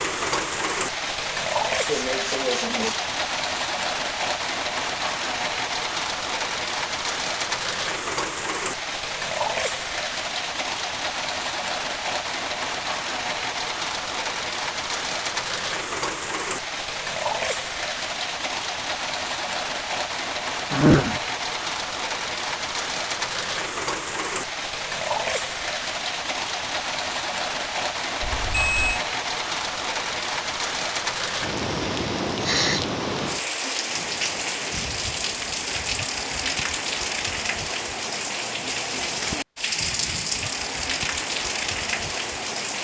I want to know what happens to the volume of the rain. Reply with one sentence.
The volume of the rain stays about the same.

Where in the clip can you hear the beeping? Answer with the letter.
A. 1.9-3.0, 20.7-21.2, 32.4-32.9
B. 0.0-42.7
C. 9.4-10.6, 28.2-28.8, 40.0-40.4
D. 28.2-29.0
D.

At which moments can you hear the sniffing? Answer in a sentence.
The sniffing can be heard from 1.9 to 3.0 s, from 20.7 to 21.2 s and from 32.4 to 32.9 s.